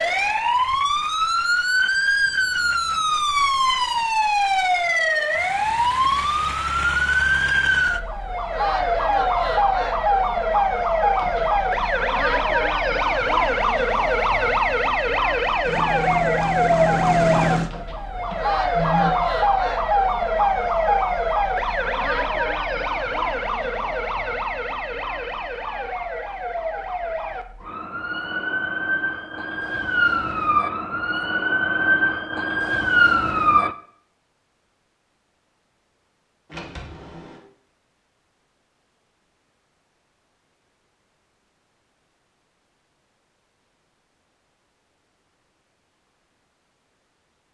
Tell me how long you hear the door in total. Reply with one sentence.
The door can be heard for 3 seconds in total.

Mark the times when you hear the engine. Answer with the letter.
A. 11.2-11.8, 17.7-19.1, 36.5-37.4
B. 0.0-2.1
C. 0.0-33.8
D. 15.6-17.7
D.